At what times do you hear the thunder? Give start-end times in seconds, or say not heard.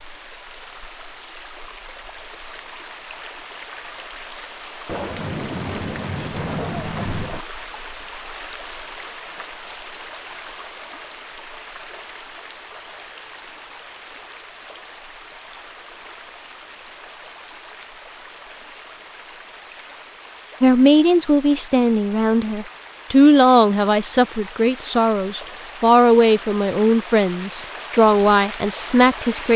4.8-7.5.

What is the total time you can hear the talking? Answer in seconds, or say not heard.
9 s.